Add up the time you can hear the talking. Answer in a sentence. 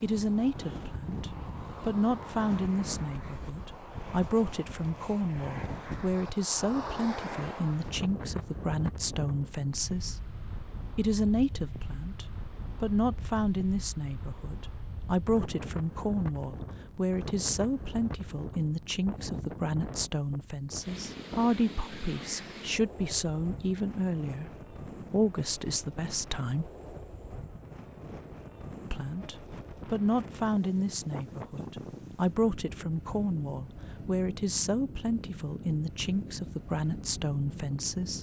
The talking can be heard for 35 seconds in total.